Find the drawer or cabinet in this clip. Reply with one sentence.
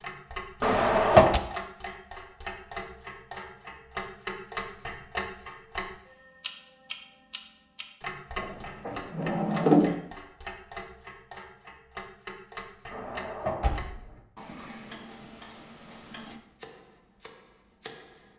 The drawer or cabinet can be heard from 0.6 to 1.4 s, from 8.3 to 9.9 s and from 12.9 to 14.1 s.